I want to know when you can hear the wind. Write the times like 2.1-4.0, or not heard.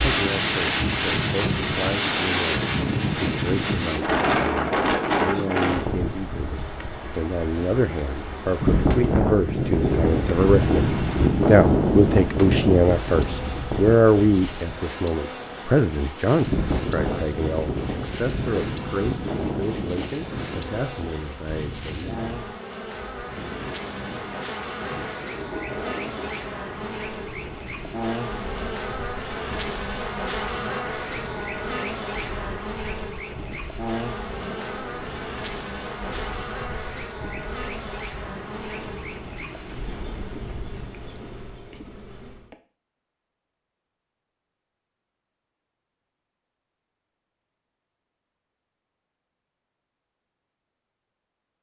0.0-40.9.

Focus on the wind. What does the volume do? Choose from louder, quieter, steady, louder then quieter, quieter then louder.
quieter.